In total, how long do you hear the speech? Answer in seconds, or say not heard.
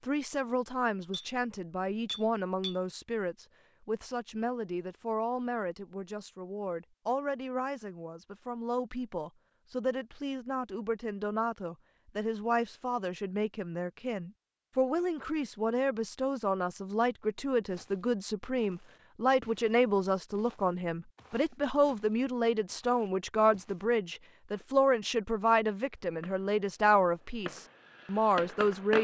29 s.